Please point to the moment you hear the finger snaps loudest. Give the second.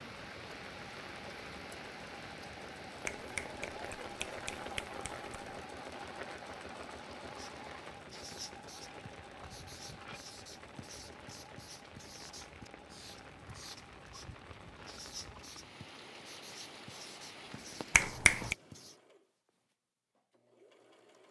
18 s.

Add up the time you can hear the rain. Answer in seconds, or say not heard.
18 s.